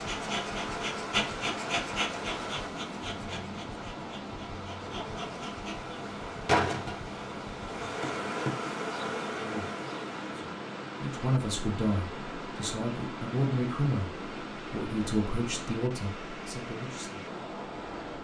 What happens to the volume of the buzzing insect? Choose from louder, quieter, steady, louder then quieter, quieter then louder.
quieter then louder.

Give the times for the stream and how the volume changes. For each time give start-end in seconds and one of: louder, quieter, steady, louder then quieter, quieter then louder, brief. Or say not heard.
0.0-18.1 steady.